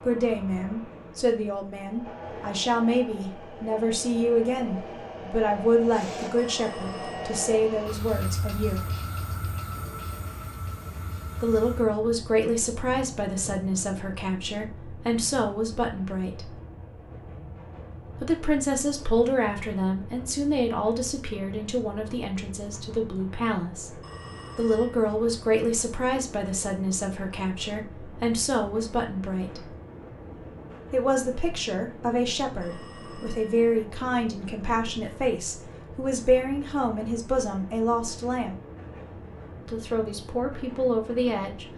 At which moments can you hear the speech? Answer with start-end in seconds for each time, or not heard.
0.0-8.8, 11.4-16.4, 18.1-23.9, 24.6-29.6, 30.9-38.5, 39.6-41.6.